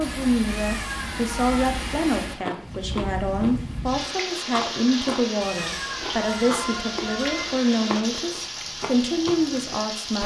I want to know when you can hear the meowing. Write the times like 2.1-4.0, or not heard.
0.5-1.7, 5.4-7.5.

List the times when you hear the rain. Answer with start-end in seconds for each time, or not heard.
0.0-10.2.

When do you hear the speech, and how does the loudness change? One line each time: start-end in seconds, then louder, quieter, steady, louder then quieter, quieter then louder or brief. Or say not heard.
0.0-10.2 steady.